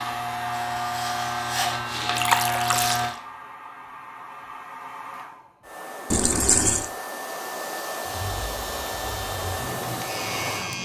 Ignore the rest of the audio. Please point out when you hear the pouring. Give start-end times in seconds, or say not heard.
2.1-3.0, 6.1-6.9.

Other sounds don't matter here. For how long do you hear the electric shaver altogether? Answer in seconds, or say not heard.
6 s.